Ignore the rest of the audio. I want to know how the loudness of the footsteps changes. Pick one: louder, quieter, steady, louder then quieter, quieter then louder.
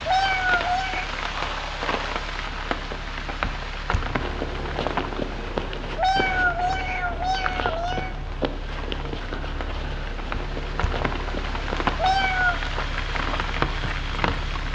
quieter.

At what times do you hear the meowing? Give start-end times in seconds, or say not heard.
0.1-1.1, 6.0-8.1, 11.9-12.6.